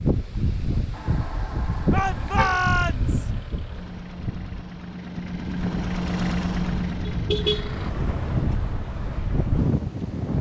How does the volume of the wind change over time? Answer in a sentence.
The loudness of the wind goes down, then up.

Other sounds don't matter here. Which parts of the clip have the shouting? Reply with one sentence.
You can hear the shouting from 1.9 to 3.3 s.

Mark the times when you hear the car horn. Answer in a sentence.
The car horn can be heard from 0.9 to 2.6 s and from 7.0 to 7.8 s.